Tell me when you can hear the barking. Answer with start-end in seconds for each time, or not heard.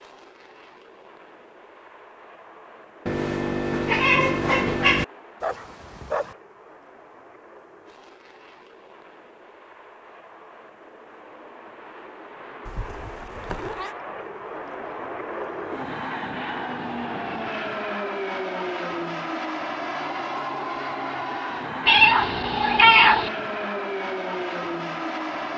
5.4-6.3.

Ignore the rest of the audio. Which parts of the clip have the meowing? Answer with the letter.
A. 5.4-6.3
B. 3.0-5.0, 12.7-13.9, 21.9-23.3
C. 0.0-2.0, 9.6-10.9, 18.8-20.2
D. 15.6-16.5
B.